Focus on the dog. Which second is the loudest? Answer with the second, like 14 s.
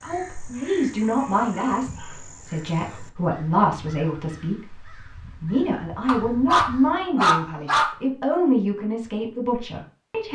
7 s.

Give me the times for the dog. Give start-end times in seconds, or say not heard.
0.5-2.2, 6.0-8.0.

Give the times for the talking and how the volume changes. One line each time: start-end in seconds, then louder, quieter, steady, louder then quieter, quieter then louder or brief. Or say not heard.
0.0-10.3 steady.